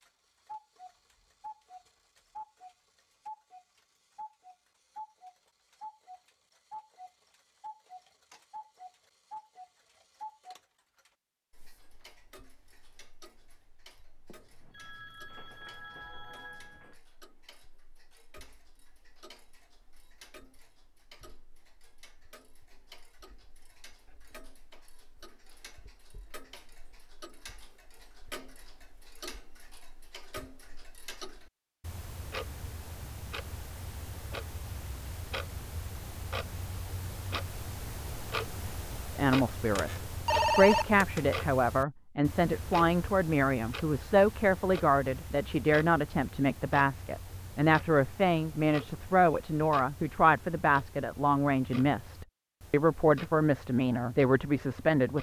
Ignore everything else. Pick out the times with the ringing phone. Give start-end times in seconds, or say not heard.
14.2-17.0, 39.8-41.2.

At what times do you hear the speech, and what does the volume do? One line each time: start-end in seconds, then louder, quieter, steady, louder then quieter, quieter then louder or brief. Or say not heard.
39.1-55.1 steady.